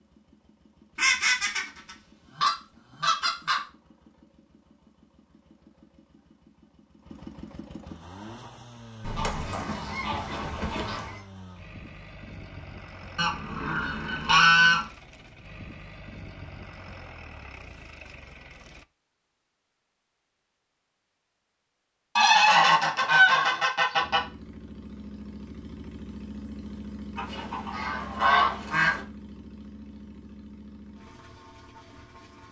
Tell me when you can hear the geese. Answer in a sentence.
The geese can be heard from 0.9 to 3.6 s, from 9.0 to 11.2 s, from 13.2 to 14.8 s, from 22.1 to 24.2 s and from 27.1 to 29.0 s.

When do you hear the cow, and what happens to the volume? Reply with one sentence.
The cow can't be heard in this clip.